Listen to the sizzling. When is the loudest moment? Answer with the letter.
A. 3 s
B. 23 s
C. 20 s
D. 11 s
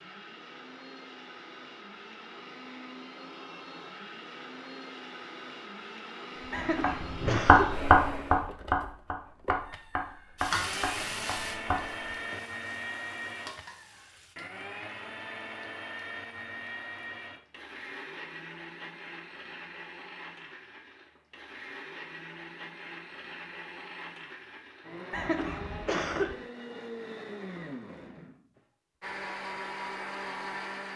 D.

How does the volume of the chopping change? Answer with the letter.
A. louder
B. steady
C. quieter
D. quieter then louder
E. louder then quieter
C.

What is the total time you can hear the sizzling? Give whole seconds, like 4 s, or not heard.
4 s.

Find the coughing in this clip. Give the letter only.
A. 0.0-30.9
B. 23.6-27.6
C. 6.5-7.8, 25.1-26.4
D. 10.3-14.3
C.